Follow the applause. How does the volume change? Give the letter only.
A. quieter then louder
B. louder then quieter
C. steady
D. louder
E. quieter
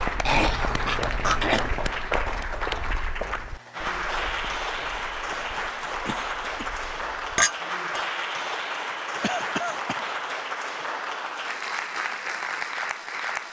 C.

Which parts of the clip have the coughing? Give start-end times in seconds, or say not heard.
0.2-1.7, 6.0-6.7, 9.2-10.1.